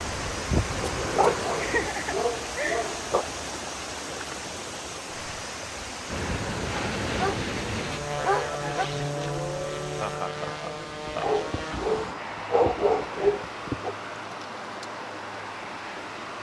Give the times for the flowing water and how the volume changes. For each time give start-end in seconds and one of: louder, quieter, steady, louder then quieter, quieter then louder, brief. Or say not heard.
0.0-16.3 quieter.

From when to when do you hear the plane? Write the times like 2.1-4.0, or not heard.
0.0-1.9, 6.0-16.3.